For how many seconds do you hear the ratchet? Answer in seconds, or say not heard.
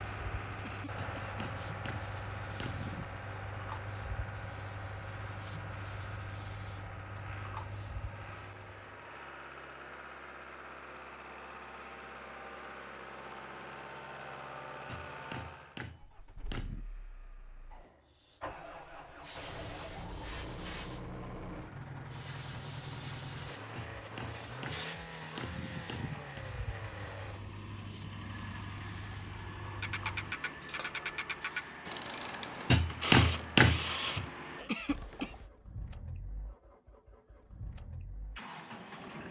6 s.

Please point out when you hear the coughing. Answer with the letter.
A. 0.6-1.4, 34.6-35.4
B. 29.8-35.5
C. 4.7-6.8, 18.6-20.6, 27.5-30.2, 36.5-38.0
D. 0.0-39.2
A.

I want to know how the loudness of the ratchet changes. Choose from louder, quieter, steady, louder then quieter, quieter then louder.
quieter.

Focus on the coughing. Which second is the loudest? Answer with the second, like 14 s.
35 s.